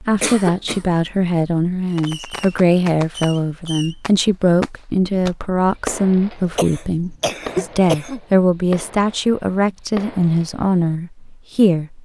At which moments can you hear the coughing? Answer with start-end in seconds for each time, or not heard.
0.2-0.8, 6.3-8.2.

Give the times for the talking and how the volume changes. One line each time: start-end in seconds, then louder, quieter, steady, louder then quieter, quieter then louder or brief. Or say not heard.
0.0-11.9 steady.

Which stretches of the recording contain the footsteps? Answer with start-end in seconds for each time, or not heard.
not heard.